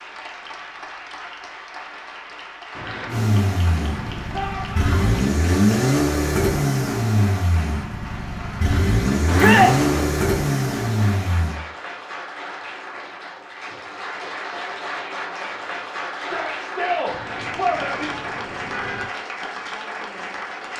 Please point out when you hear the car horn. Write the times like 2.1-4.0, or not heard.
2.7-4.3, 9.2-10.2, 17.1-19.1.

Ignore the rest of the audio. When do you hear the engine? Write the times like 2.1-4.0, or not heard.
3.1-11.6.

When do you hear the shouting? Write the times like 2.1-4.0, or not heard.
4.3-5.2, 9.3-9.8, 16.1-18.1.